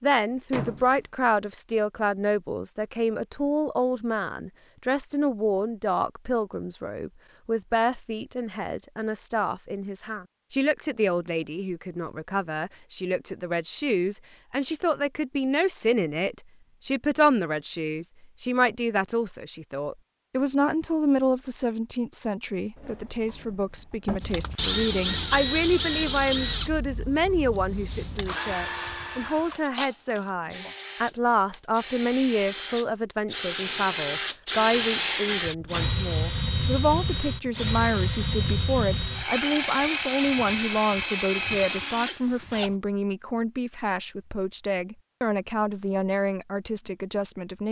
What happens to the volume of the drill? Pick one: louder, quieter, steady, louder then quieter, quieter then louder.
quieter then louder.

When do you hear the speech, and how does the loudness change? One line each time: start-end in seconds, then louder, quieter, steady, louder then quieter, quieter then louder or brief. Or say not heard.
0.0-47.6 steady.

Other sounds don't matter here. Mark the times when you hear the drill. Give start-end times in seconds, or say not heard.
24.2-42.8.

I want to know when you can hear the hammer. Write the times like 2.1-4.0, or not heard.
not heard.